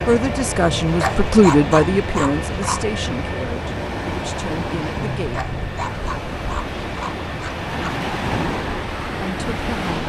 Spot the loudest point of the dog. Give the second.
2 s.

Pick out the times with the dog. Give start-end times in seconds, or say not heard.
1.0-2.9, 5.3-8.0.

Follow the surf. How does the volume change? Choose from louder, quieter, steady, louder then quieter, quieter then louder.
louder.